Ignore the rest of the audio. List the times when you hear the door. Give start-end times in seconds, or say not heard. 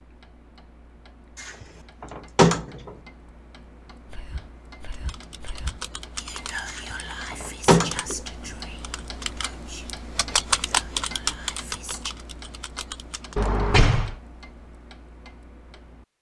1.4-2.9, 6.7-8.0, 13.3-14.2.